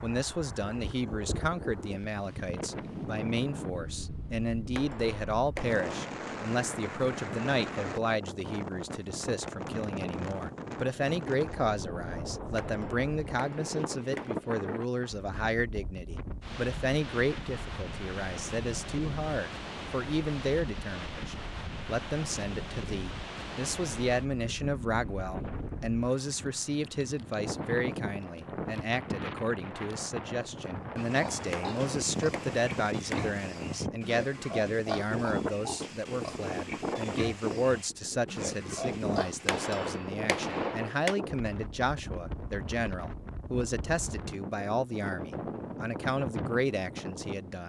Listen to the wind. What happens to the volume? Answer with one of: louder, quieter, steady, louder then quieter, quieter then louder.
steady.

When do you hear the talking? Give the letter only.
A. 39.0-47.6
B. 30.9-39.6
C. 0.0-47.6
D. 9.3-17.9
C.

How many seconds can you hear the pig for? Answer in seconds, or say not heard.
9 s.